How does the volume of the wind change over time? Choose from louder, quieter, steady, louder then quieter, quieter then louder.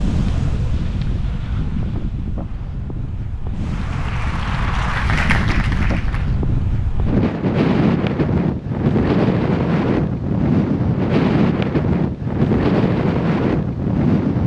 louder.